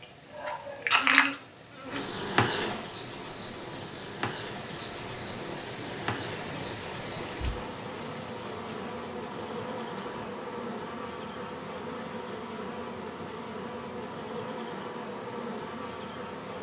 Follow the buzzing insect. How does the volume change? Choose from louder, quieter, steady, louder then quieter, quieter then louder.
quieter.